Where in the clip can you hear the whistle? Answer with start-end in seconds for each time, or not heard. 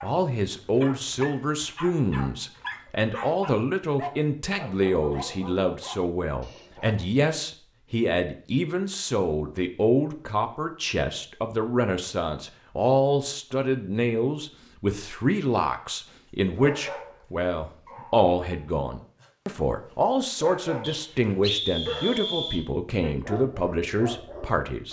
20.8-22.6.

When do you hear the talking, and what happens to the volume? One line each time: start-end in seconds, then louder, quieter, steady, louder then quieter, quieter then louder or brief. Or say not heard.
0.0-24.8 steady.